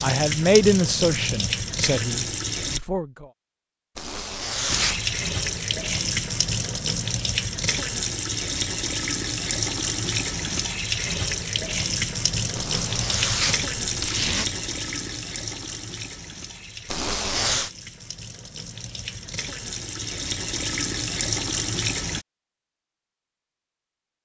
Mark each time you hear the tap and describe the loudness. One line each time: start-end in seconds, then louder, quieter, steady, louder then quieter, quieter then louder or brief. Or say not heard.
0.0-2.8 brief
4.7-22.2 quieter then louder.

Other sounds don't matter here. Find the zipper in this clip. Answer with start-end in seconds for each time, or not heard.
4.0-5.2, 12.6-14.4, 16.9-17.7.